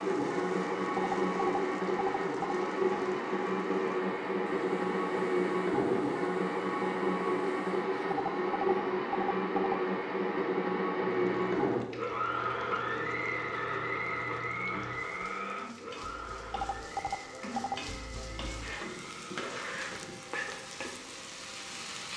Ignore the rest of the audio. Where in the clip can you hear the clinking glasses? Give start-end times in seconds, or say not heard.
not heard.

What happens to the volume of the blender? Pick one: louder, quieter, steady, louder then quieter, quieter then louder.
quieter.